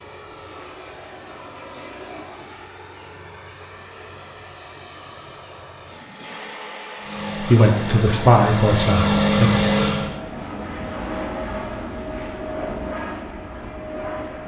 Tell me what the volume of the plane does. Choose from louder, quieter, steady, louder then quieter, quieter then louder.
louder.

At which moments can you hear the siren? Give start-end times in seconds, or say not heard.
7.0-10.1.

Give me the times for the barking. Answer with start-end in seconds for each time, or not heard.
not heard.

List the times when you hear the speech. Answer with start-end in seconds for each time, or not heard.
7.4-9.5.